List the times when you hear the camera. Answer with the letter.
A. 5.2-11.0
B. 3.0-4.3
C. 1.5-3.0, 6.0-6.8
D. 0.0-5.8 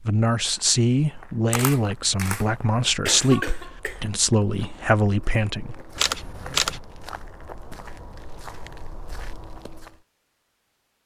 C.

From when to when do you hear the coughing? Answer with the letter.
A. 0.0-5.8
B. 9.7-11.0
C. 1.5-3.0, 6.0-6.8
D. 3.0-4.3
D.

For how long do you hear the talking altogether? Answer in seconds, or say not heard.
6 s.